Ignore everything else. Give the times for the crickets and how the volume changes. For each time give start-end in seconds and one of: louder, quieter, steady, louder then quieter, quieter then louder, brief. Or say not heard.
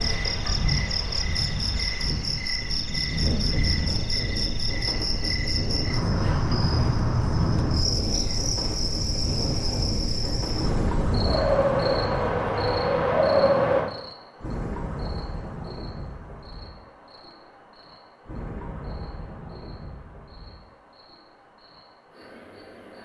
0.0-22.9 quieter.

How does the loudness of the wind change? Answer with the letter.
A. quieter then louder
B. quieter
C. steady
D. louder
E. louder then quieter
D.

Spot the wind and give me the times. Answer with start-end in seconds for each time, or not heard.
0.0-13.9.